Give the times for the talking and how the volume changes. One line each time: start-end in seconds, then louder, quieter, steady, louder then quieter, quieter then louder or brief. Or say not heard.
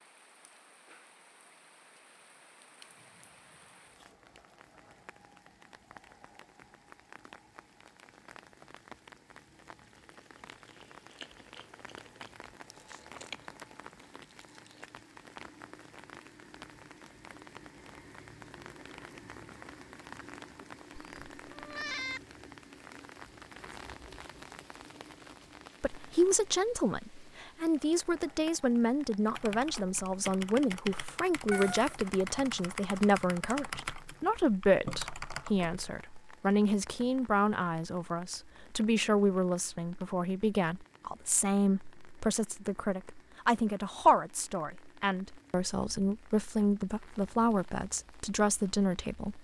25.8-49.3 steady.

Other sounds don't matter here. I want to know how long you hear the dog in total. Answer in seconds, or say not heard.
not heard.